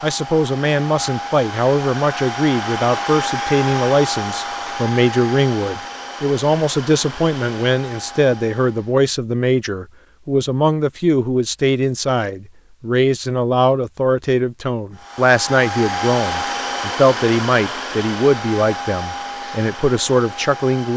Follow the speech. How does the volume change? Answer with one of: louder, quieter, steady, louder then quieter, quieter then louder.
steady.